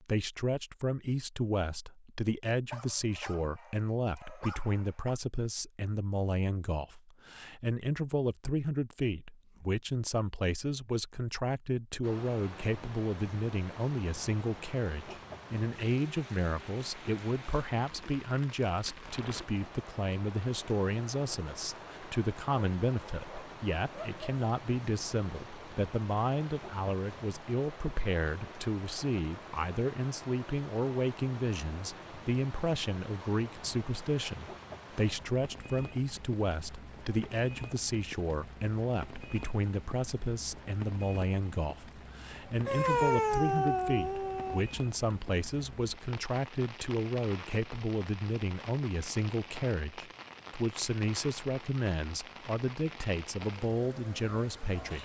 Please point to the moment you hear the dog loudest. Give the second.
43 s.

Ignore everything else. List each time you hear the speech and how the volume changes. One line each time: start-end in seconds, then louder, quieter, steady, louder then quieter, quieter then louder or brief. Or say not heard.
0.0-54.9 steady.